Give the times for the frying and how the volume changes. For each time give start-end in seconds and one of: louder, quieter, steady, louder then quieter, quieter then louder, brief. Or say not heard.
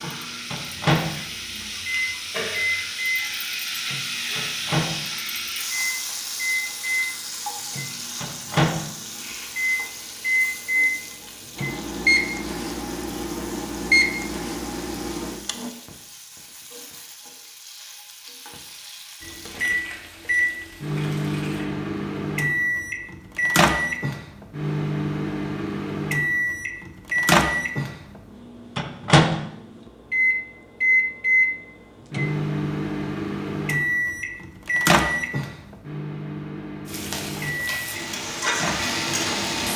0.0-21.6 quieter
36.9-39.7 brief.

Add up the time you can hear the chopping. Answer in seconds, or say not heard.
not heard.